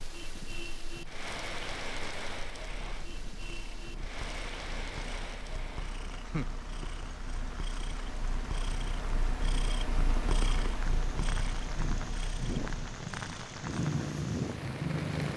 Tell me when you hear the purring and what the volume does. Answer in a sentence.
You can hear the purring from 0.0 to 15.3 s, getting louder.